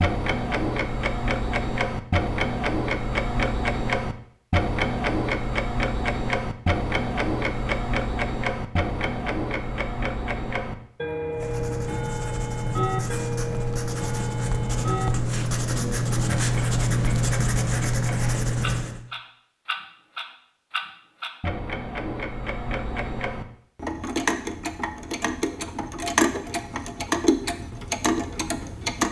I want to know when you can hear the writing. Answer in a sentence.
The writing can be heard from 11.3 to 19.1 s.